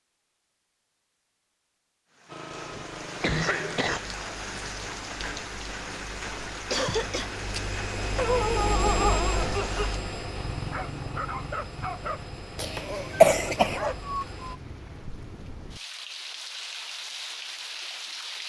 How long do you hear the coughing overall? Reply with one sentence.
You can hear the coughing for 3 seconds altogether.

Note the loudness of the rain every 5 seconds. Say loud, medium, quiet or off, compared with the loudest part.
loud, loud, medium, loud.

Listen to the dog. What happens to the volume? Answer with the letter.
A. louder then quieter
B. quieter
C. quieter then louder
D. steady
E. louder
B.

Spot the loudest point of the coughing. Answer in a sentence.
The loudest moment of the coughing is at 13 seconds.